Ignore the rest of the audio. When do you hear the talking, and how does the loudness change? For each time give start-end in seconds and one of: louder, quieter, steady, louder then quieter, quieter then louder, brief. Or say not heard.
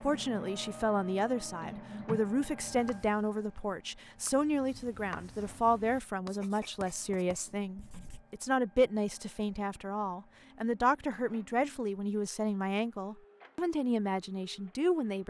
0.0-15.2 steady.